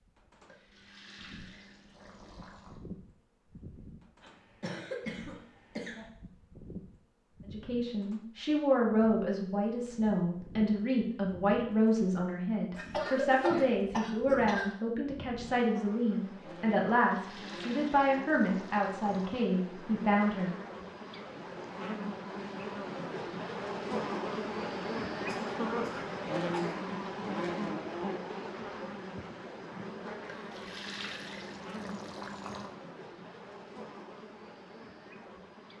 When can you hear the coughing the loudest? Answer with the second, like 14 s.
13 s.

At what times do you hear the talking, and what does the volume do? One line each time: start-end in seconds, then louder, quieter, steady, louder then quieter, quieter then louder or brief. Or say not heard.
7.5-20.6 steady.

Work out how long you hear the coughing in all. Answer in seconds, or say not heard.
5 s.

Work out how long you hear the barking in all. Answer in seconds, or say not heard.
not heard.